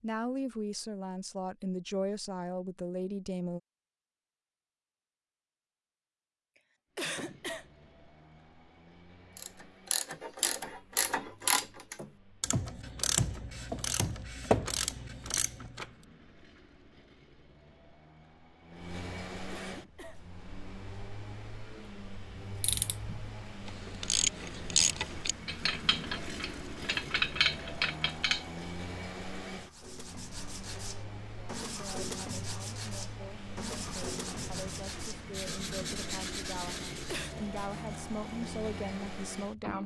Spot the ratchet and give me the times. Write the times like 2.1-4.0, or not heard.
9.3-15.8, 22.3-28.4.